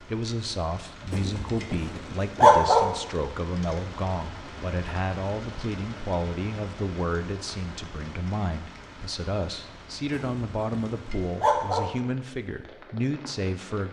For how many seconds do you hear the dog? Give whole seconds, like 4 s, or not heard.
4 s.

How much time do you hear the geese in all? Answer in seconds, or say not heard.
not heard.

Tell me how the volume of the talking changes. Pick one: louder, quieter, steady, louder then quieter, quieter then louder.
steady.